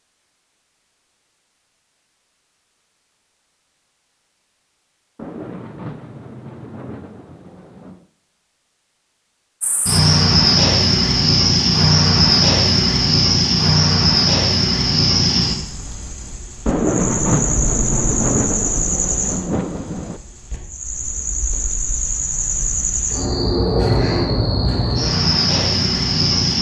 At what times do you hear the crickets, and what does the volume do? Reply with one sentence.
You can hear the crickets from 9.6 to 26.5 s, getting quieter then louder.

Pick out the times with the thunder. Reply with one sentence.
The thunder can be heard from 5.2 to 8.1 s and from 16.6 to 20.2 s.